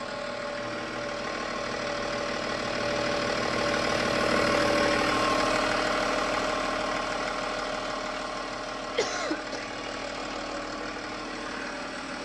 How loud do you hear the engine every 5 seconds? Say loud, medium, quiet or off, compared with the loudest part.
loud, loud, medium.